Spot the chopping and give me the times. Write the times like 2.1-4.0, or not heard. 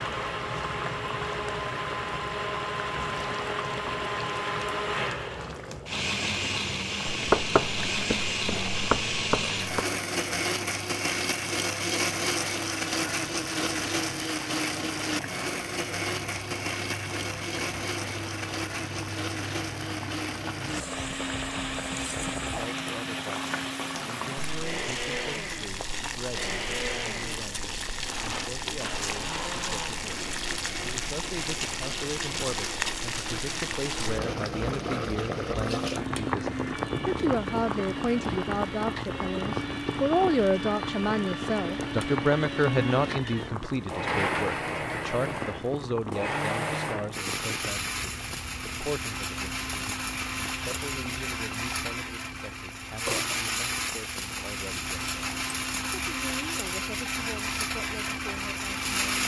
7.1-9.8.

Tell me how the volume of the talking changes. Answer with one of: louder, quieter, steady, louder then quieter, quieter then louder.
louder then quieter.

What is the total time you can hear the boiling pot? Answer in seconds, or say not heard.
59 s.